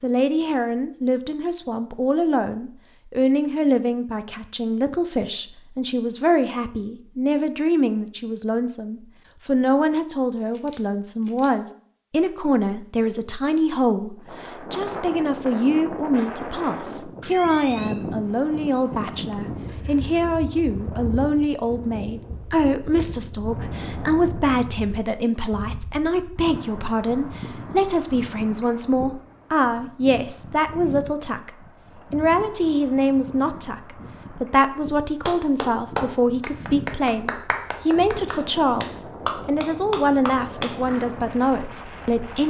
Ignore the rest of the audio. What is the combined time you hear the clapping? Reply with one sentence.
You can hear the clapping for 6 seconds altogether.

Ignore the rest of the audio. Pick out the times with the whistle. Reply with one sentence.
You can't hear the whistle here.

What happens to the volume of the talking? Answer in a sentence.
The volume of the talking stays about the same.